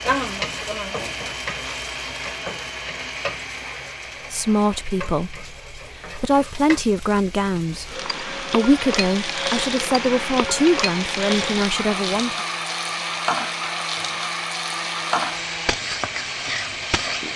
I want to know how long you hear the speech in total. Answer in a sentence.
You can hear the speech for 8 seconds altogether.